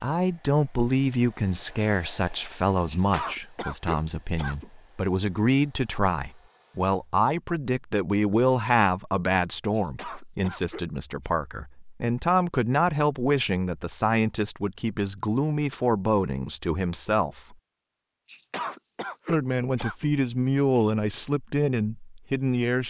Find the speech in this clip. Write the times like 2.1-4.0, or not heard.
0.0-17.6, 19.2-22.8.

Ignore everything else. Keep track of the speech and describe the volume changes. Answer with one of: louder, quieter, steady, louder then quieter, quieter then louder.
steady.